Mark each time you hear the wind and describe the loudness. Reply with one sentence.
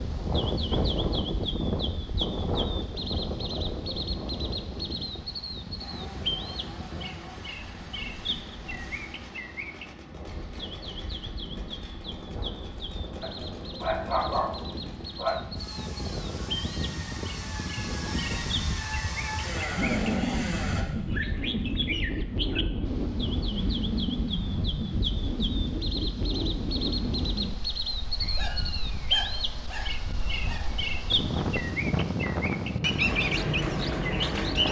You can hear the wind from 0.0 to 34.6 s, getting quieter then louder.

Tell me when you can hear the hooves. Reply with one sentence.
The hooves can't be heard in this clip.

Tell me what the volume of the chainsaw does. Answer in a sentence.
The volume of the chainsaw goes up.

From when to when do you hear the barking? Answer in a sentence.
The barking can be heard from 13.2 to 15.4 s and from 28.2 to 30.8 s.